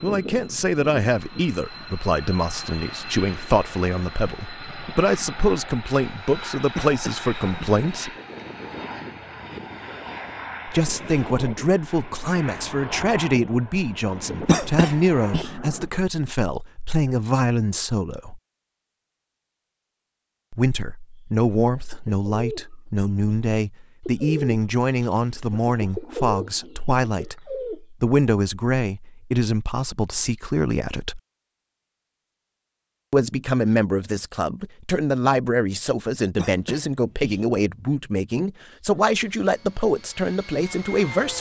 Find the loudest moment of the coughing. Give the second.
15 s.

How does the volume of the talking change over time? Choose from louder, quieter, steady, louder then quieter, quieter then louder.
steady.